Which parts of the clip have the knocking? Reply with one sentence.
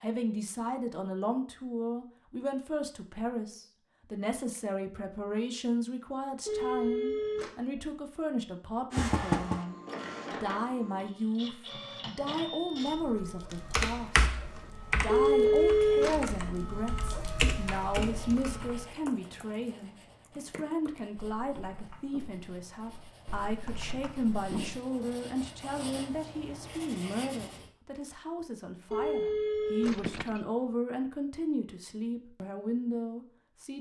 The knocking can be heard from 8.9 to 9.6 s and from 29.9 to 30.4 s.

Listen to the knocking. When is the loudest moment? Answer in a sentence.
The loudest moment of the knocking is at 9 seconds.